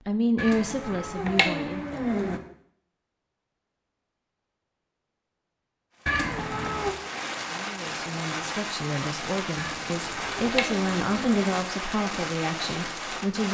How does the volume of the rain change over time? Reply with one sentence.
The volume of the rain stays about the same.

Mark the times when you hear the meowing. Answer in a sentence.
The meowing can be heard from 0.3 to 2.4 s, from 6.0 to 7.0 s and from 9.6 to 11.4 s.